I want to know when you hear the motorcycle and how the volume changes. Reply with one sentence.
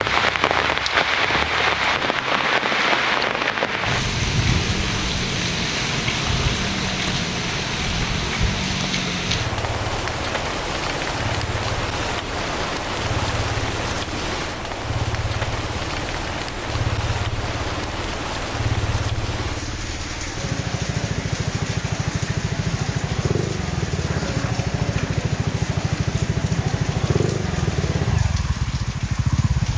The motorcycle can be heard from 0.0 to 29.7 s, getting louder.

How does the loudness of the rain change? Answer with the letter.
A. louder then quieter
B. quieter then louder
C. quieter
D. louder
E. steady
C.